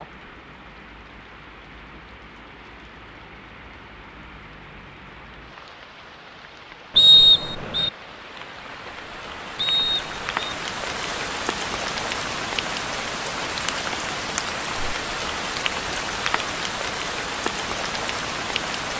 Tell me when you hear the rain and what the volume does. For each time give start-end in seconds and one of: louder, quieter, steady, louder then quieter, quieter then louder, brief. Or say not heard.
0.0-18.9 louder.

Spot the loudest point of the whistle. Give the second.
7 s.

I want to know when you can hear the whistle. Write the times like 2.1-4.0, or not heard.
7.0-7.9, 9.6-10.6.